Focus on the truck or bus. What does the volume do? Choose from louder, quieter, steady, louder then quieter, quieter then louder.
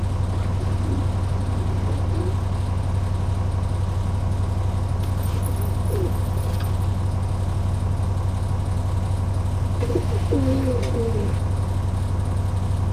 steady.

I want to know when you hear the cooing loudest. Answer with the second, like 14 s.
10 s.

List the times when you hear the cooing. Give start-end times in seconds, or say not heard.
0.3-2.4, 5.0-6.8, 9.8-11.4.